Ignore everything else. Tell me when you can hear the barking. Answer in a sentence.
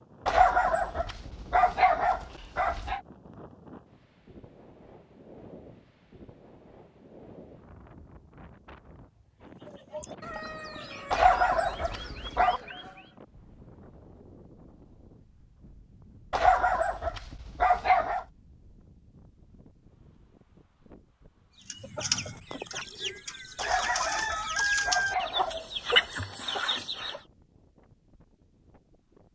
The barking can be heard from 0.2 to 3.0 s, from 11.1 to 12.6 s, from 16.3 to 18.2 s and from 23.6 to 26.1 s.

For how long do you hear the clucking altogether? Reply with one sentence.
The clucking can be heard for 9 seconds in total.